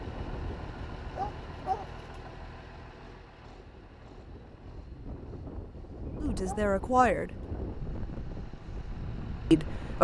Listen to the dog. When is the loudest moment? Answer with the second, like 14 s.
2 s.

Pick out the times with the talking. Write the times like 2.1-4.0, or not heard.
6.2-7.3, 9.5-9.9.